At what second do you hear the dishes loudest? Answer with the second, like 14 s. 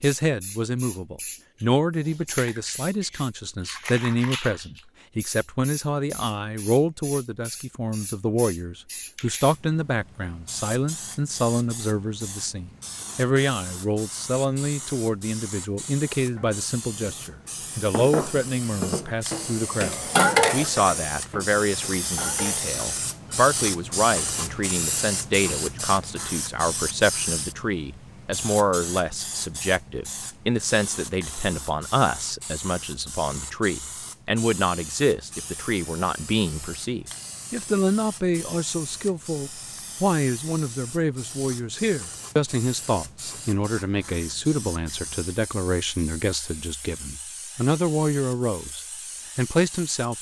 20 s.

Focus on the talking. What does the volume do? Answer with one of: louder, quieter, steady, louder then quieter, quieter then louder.
steady.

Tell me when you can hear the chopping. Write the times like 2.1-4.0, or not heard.
not heard.